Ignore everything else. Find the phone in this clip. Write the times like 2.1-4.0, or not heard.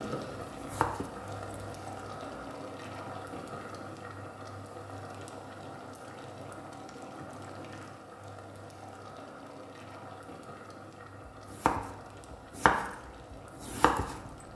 not heard.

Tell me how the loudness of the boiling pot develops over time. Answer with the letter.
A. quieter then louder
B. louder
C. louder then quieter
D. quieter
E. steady
D.